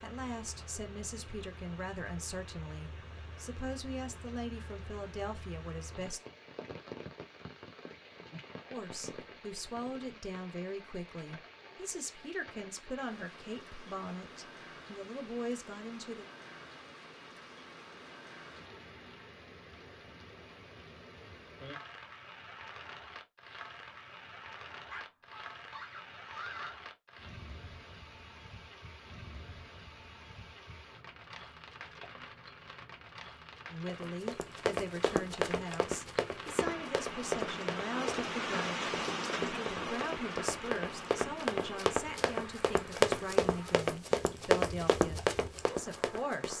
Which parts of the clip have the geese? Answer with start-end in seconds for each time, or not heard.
not heard.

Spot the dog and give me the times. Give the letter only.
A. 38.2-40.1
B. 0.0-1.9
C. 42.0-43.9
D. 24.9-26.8
D.